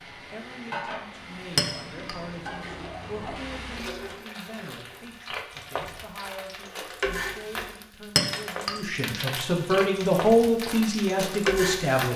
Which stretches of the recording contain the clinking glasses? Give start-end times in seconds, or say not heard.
1.6-2.1, 8.2-8.7.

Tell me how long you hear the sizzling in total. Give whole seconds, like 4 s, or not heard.
12 s.